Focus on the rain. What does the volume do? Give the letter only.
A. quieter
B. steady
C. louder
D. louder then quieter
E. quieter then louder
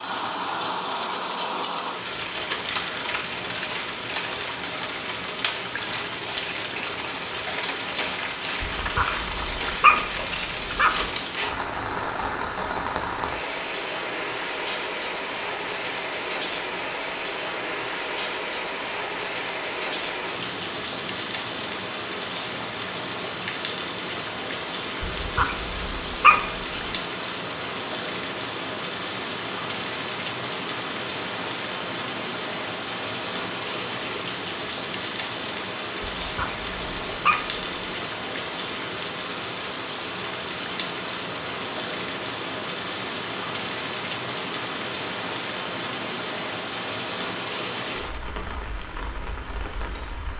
B.